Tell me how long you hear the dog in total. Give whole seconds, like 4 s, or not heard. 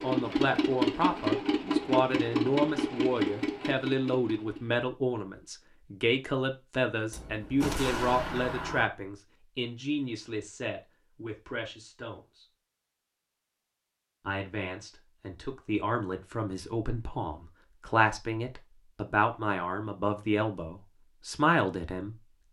not heard.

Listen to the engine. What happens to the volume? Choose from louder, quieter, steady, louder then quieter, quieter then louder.
quieter.